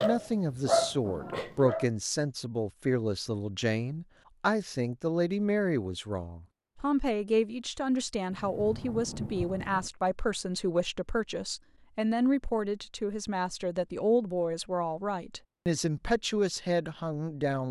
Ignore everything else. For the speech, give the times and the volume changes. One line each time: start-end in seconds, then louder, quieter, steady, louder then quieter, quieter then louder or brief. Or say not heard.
0.0-17.6 steady.